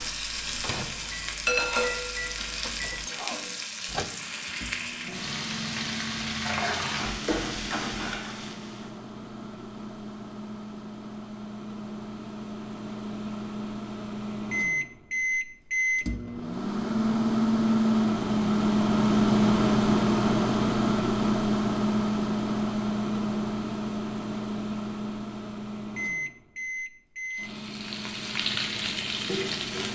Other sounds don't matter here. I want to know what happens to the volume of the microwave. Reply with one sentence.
The volume of the microwave goes up, then down.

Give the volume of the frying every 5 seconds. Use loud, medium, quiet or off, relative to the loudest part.
loud, loud, off, off, off, loud.